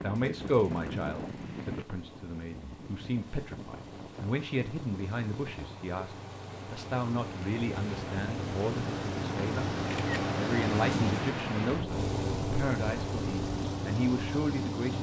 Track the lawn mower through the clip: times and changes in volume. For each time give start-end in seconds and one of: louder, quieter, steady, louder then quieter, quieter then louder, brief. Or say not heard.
0.0-14.9 louder.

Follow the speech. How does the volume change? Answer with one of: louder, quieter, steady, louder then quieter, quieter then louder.
steady.